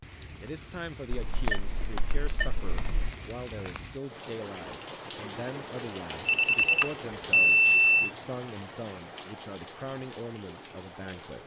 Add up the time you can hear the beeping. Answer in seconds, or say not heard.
4 s.